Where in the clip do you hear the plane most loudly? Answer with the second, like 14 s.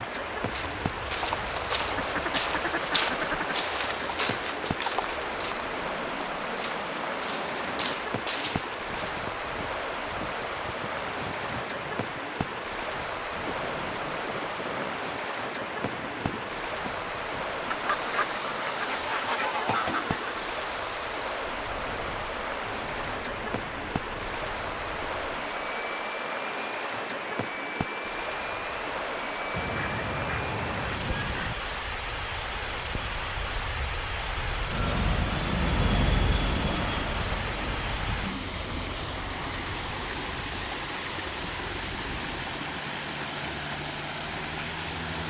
36 s.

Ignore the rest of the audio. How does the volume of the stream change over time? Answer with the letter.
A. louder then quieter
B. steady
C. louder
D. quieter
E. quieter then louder
B.